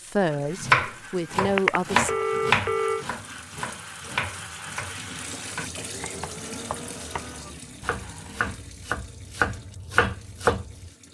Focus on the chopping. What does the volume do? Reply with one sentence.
The loudness of the chopping goes down, then up.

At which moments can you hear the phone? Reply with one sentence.
The phone can be heard from 1.6 to 3.0 s.